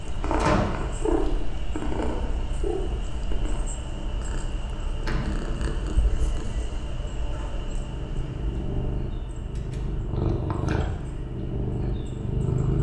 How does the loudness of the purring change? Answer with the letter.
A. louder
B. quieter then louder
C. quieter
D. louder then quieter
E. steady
B.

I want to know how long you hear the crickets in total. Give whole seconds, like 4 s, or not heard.
13 s.